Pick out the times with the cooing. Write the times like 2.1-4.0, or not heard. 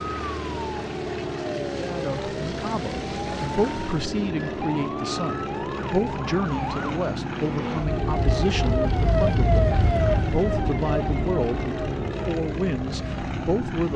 not heard.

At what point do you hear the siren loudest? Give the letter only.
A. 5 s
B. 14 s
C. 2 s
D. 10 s
D.